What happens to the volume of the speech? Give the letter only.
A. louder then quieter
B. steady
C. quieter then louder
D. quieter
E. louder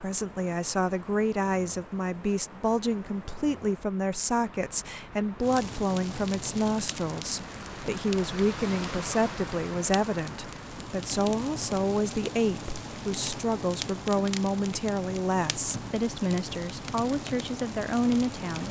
B.